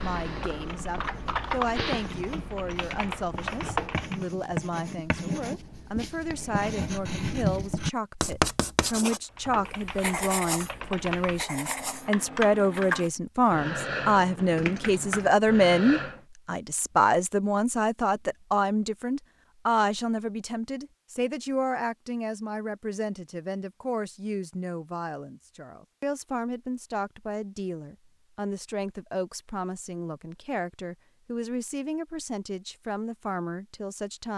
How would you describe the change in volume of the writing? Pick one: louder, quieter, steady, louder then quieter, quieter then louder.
louder then quieter.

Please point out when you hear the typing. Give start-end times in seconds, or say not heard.
0.0-4.2, 9.2-16.2.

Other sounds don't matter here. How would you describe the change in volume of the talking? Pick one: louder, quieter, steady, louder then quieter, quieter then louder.
louder then quieter.